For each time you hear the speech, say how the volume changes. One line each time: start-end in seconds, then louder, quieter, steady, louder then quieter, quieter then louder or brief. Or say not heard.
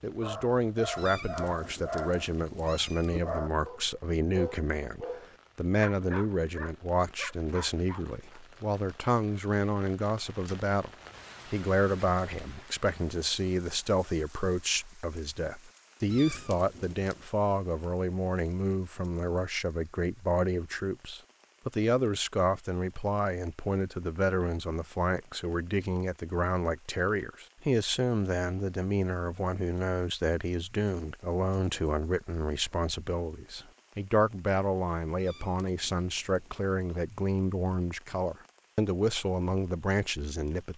0.0-40.7 steady.